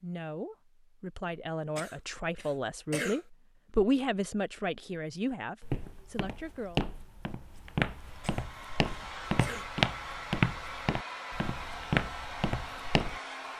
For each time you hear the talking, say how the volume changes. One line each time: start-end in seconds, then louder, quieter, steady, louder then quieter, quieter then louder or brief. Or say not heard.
0.0-6.8 louder then quieter.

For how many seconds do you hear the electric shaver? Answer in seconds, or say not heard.
not heard.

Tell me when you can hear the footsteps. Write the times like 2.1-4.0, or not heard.
5.6-13.2.